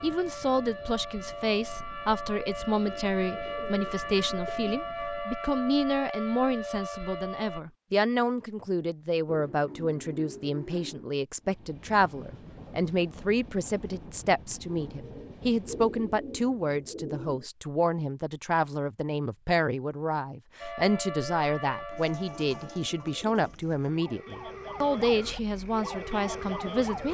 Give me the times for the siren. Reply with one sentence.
The siren can be heard from 0.0 to 7.6 s and from 20.6 to 27.1 s.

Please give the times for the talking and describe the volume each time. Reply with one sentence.
The talking can be heard from 0.0 to 27.1 s, at a steady volume.